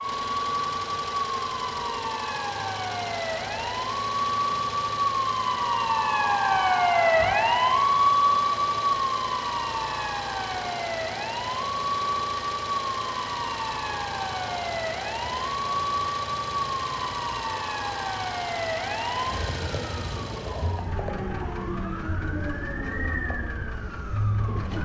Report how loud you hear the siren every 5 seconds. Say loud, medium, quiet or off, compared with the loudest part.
medium, loud, medium, medium, medium.